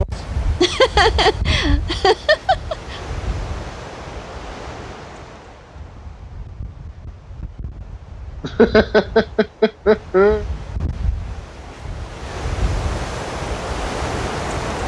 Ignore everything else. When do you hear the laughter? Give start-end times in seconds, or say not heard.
0.6-3.0, 8.4-10.4.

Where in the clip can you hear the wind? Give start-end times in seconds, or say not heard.
0.0-14.8.